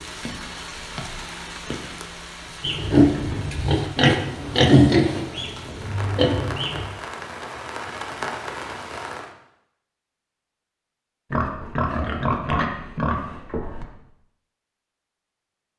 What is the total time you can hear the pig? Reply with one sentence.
You can hear the pig for 7 seconds altogether.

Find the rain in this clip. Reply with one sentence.
The rain can be heard from 0.0 to 9.3 s.